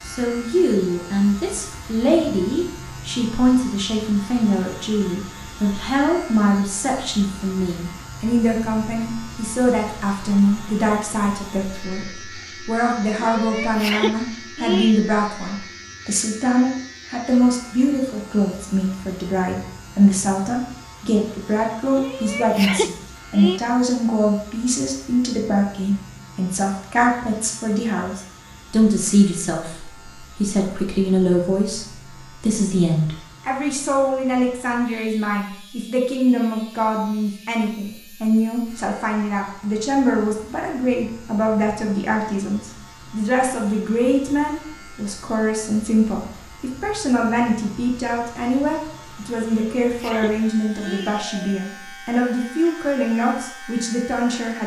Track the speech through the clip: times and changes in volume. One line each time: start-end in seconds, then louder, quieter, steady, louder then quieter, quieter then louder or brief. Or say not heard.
0.1-54.6 steady.